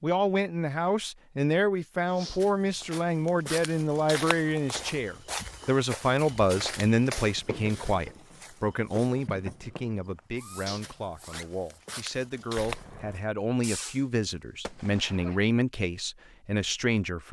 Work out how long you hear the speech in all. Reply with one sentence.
The speech can be heard for 17 seconds in total.